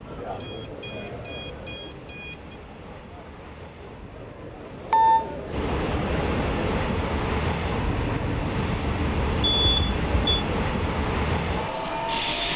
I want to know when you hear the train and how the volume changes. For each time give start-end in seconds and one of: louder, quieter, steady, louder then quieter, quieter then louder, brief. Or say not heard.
0.0-12.5 louder.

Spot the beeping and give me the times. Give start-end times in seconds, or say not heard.
0.4-2.6, 4.9-5.3, 9.4-10.4.